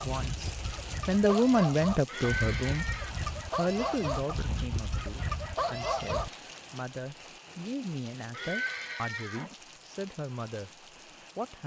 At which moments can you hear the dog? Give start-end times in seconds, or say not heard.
0.0-6.3.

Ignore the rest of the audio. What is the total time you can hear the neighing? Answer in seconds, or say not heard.
2 s.